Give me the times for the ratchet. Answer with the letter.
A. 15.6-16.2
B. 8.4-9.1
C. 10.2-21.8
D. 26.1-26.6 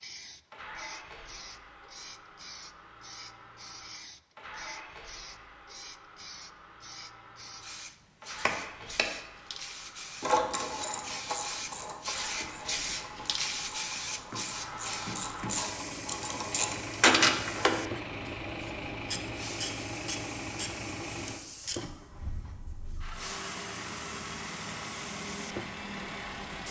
C.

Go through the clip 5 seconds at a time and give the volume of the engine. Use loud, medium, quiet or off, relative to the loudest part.
medium, medium, medium, loud, loud, loud.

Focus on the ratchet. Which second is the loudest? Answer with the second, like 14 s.
17 s.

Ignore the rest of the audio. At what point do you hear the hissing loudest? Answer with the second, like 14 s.
13 s.